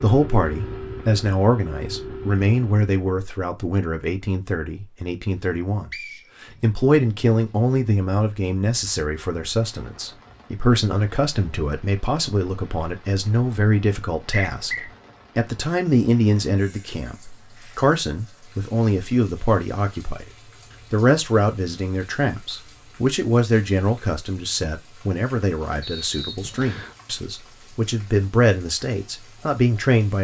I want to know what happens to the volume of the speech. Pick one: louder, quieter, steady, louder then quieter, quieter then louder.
steady.